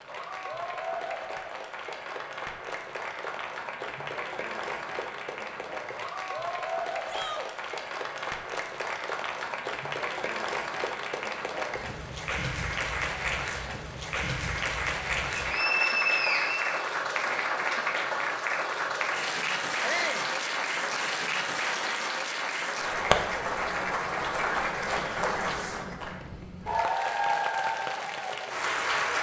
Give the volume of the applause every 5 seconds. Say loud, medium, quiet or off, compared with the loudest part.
medium, medium, loud, loud, loud, loud.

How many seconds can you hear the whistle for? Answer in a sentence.
The whistle can be heard for 2 seconds in total.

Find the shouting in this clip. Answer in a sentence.
You can hear the shouting from 7.0 to 7.5 s and from 19.8 to 20.2 s.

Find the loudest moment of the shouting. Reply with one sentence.
The loudest moment of the shouting is at 20 seconds.